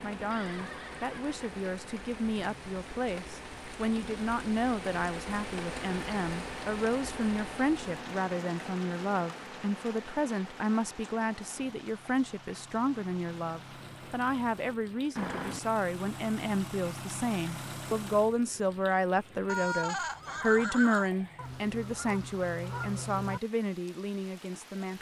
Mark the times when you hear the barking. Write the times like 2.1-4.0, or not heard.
not heard.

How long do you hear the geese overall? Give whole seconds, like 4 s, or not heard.
2 s.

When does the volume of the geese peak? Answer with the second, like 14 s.
23 s.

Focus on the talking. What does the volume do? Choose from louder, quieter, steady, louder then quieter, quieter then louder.
steady.